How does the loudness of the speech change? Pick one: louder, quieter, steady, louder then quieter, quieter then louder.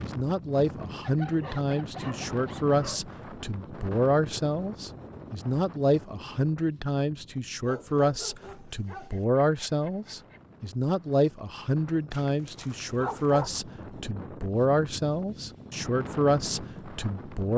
steady.